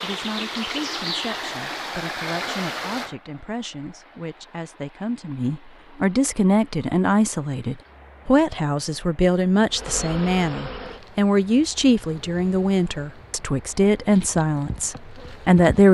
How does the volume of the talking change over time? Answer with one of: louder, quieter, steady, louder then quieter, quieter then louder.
louder.